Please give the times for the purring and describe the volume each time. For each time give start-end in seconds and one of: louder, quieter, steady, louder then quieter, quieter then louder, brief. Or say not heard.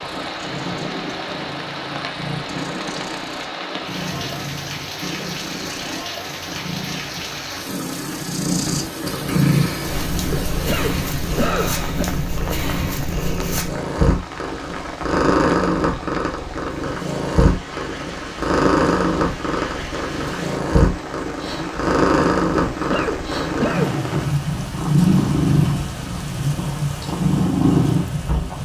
0.0-28.6 louder.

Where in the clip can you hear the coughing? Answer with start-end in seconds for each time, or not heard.
10.3-12.1, 22.7-24.2.